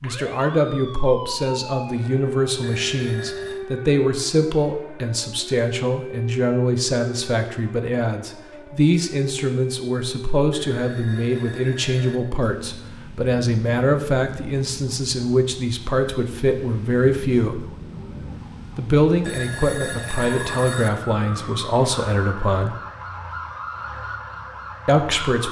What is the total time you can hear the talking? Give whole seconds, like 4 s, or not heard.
22 s.